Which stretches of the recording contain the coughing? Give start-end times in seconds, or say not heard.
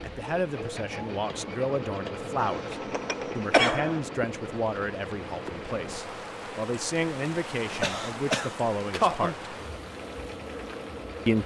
2.4-4.0, 7.8-9.3.